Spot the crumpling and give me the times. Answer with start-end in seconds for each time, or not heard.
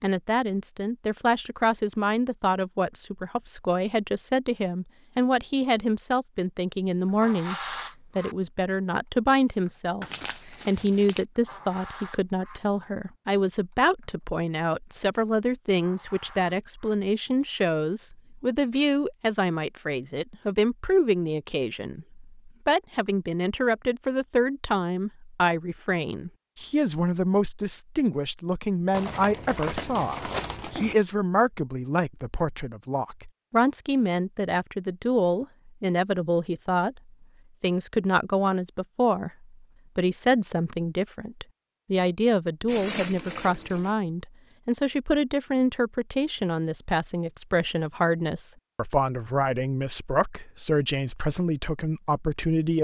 10.0-11.2, 28.9-30.9, 42.6-44.0.